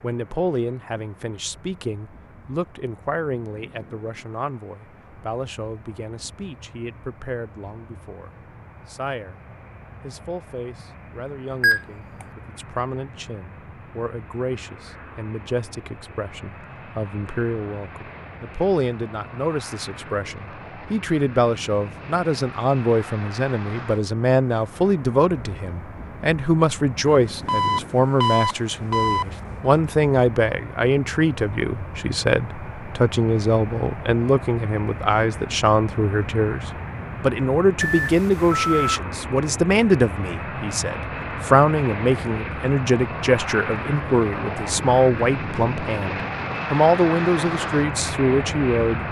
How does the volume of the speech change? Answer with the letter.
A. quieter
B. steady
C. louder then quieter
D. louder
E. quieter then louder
D.